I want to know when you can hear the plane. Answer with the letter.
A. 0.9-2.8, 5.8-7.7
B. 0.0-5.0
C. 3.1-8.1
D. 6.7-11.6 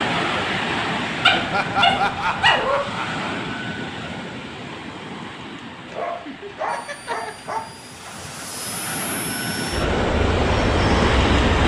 D.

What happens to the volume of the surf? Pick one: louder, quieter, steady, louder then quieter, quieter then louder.
quieter then louder.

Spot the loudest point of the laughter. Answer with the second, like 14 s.
2 s.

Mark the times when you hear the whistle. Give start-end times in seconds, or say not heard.
not heard.